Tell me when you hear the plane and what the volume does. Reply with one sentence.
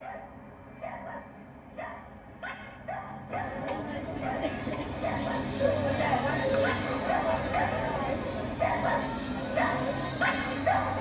The plane can be heard from 0.0 to 10.9 s, getting louder.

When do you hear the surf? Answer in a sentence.
The surf can't be heard in this clip.